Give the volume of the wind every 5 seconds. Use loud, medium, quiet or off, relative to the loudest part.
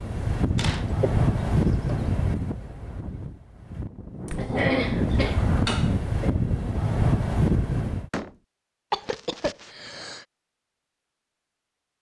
loud, loud, off.